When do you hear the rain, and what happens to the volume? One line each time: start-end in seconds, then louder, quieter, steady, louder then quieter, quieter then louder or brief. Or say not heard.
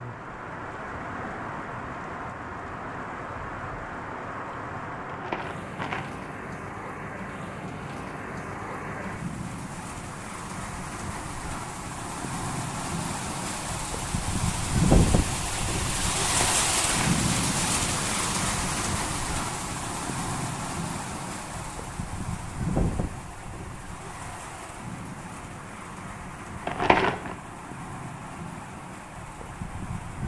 0.0-30.2 louder then quieter.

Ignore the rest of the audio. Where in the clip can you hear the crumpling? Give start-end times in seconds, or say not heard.
5.0-6.0, 16.2-17.2, 26.6-27.4.